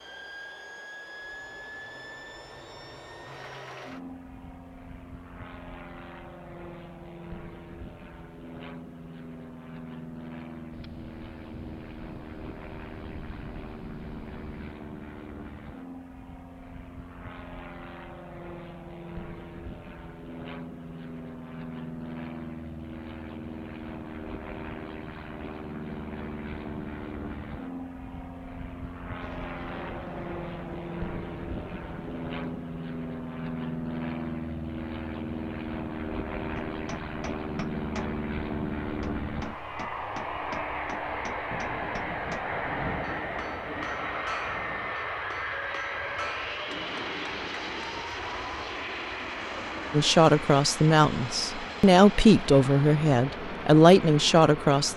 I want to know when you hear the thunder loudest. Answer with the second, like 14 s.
43 s.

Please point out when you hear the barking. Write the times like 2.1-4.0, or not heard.
not heard.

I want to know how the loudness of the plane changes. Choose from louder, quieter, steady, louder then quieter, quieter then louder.
louder.